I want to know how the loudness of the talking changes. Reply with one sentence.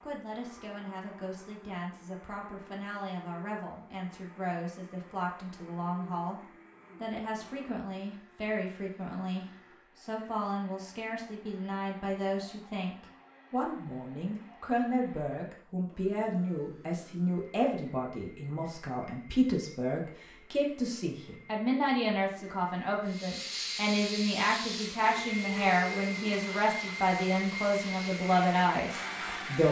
The volume of the talking goes up.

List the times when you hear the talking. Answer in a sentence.
You can hear the talking from 0.0 to 29.6 s.